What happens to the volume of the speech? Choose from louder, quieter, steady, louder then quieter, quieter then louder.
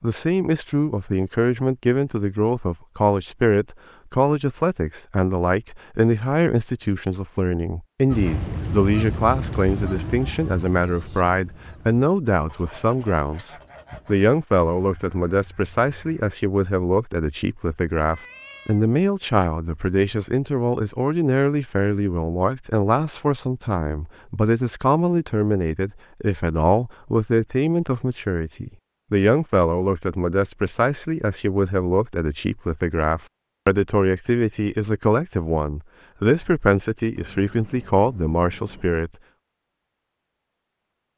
steady.